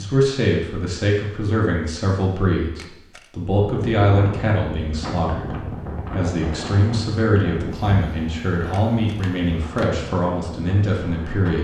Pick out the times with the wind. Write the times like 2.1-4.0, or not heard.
3.6-11.5.